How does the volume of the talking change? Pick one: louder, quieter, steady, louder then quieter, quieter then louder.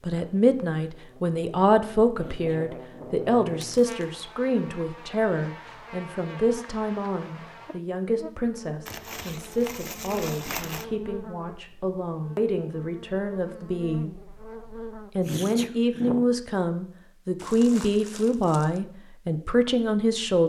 quieter then louder.